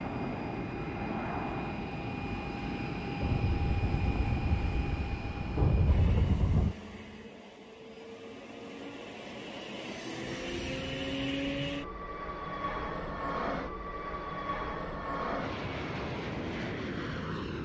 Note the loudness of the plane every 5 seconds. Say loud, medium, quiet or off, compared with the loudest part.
loud, medium, loud, loud.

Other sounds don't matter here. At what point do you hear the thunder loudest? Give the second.
6 s.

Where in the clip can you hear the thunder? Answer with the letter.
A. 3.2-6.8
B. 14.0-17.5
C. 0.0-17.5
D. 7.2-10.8
A.